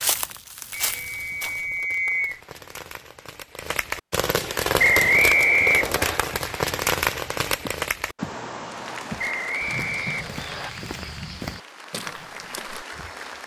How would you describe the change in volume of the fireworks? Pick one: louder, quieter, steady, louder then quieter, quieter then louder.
louder then quieter.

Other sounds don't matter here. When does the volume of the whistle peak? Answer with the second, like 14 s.
5 s.